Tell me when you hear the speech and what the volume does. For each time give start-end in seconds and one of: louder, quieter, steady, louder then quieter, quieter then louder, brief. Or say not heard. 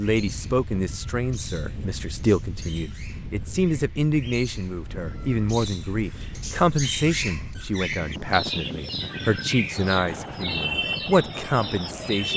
0.0-12.3 steady.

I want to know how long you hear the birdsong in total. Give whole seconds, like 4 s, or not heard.
12 s.